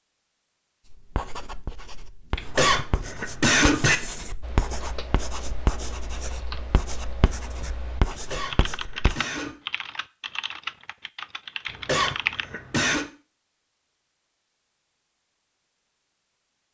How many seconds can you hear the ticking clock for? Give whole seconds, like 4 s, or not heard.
not heard.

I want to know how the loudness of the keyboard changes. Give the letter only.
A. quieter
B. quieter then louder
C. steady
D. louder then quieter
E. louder
E.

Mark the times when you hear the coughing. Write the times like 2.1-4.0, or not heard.
2.4-4.0, 8.1-9.6, 11.7-13.1.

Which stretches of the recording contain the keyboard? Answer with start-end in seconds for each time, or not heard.
4.4-12.4.